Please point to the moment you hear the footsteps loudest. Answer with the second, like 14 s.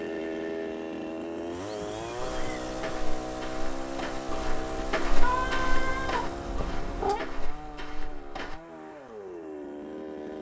5 s.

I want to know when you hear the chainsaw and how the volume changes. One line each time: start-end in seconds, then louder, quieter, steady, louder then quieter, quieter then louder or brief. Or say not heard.
0.0-10.3 quieter.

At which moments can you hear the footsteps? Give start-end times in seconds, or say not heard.
2.1-8.6.